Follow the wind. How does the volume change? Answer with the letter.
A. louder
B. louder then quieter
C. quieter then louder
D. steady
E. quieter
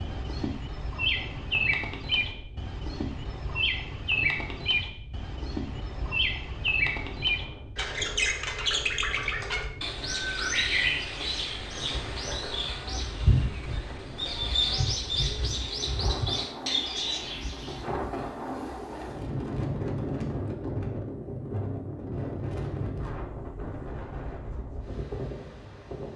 A.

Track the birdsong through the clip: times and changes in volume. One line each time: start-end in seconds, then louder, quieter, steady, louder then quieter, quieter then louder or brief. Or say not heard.
0.0-17.9 steady.